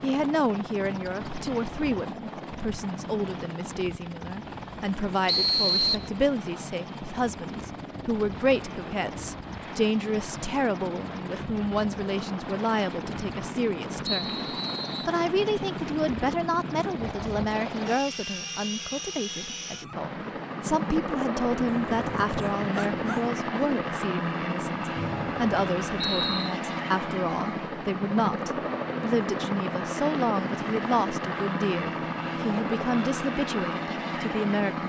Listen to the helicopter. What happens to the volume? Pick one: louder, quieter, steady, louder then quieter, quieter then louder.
louder.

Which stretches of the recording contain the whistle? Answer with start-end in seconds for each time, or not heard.
5.2-6.1, 14.1-15.1, 24.9-26.6.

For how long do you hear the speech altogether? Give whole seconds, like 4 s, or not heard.
34 s.